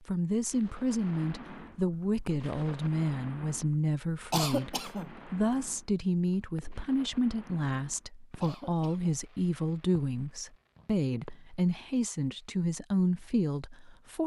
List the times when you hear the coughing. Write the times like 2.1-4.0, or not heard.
4.3-5.2, 8.4-9.2.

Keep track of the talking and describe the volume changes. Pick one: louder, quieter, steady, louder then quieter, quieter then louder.
steady.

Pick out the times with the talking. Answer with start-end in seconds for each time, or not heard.
0.1-14.2.